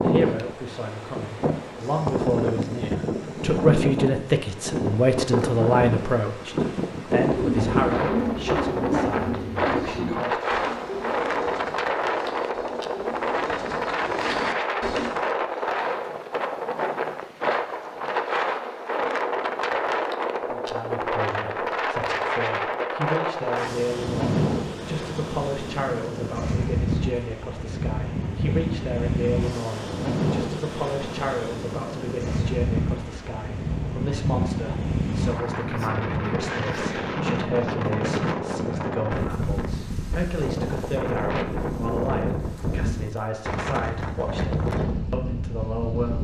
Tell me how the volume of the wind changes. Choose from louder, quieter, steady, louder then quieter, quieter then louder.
steady.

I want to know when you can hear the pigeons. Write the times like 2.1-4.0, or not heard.
7.2-15.3.